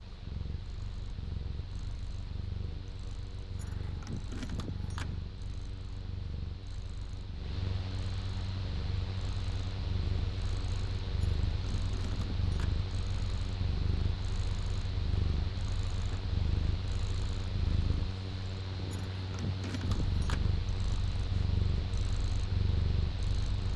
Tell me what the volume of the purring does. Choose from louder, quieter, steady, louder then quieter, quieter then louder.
louder.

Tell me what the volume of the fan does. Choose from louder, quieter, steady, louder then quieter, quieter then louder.
louder.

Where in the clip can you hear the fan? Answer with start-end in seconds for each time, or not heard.
0.0-23.7.